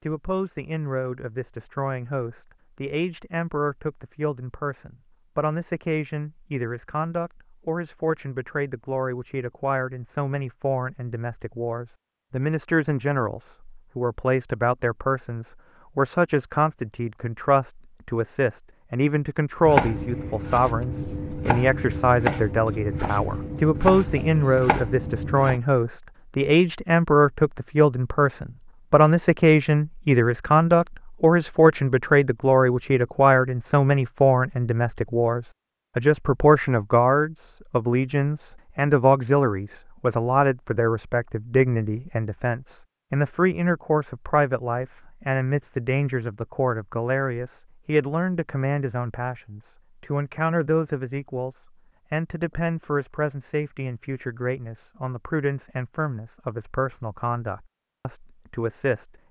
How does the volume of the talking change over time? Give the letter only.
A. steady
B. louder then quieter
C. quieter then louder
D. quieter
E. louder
B.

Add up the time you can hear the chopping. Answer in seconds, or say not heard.
6 s.